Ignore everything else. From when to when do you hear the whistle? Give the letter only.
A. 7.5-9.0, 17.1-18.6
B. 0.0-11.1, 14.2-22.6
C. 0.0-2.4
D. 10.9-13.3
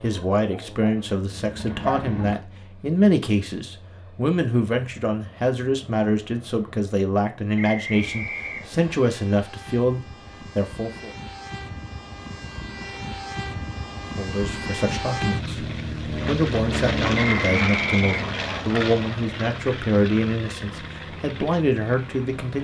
A.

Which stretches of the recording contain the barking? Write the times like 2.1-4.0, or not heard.
0.0-2.4.